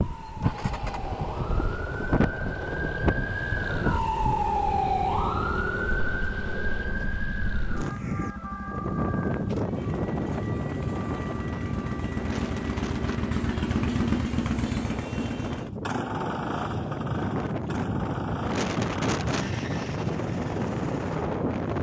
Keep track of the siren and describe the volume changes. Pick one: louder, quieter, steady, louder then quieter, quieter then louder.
louder then quieter.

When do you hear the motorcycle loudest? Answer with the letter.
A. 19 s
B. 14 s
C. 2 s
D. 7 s
B.